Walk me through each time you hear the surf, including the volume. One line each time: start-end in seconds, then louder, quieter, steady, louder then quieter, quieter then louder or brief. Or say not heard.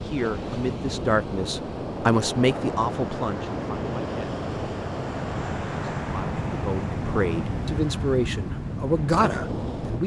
0.0-10.0 steady.